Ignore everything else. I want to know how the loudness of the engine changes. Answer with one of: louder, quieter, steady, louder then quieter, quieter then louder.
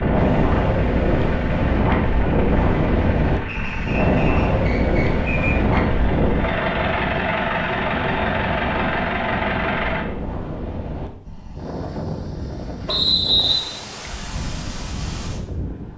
louder.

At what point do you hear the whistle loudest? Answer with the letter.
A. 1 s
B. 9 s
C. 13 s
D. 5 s
C.